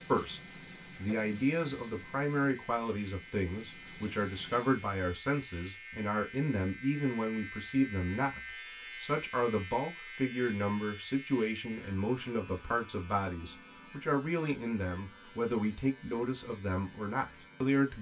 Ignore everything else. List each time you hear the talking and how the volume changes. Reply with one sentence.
You can hear the talking from 0.1 to 17.9 s, at a steady volume.